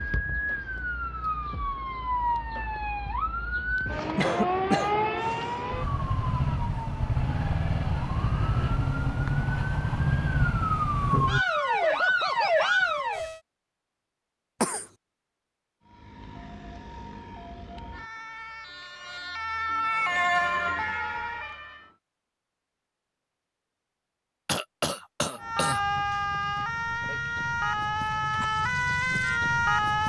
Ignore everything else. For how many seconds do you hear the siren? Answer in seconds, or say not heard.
24 s.